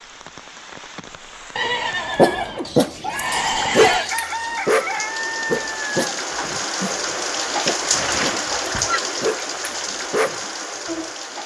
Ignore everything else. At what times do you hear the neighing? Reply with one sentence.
You can hear the neighing from 1.6 to 4.2 s and from 7.9 to 9.0 s.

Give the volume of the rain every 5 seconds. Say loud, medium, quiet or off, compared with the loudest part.
medium, loud, medium.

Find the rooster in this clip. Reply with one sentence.
You can hear the rooster from 2.6 to 6.0 s.